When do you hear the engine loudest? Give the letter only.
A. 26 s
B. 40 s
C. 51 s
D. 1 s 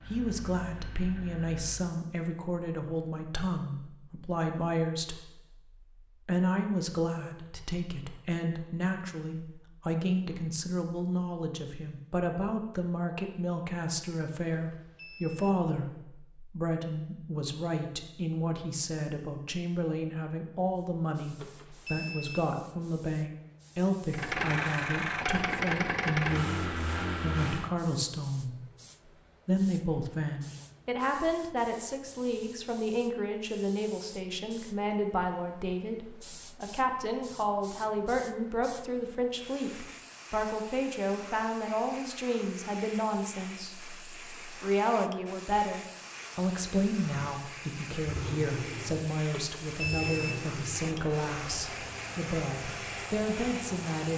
A.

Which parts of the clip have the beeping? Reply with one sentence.
The beeping can be heard from 14.5 to 15.6 s, from 21.4 to 22.5 s and from 49.3 to 50.4 s.